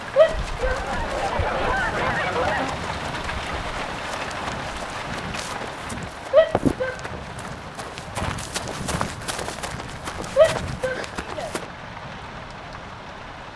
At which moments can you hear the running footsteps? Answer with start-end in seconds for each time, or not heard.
0.2-11.7.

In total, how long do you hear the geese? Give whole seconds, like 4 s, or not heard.
2 s.